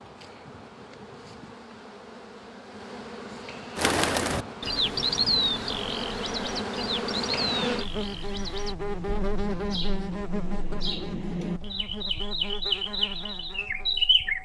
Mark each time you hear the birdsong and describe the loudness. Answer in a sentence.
The birdsong can be heard from 3.8 to 14.3 s, getting quieter then louder.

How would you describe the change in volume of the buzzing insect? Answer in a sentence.
The loudness of the buzzing insect goes up, then down.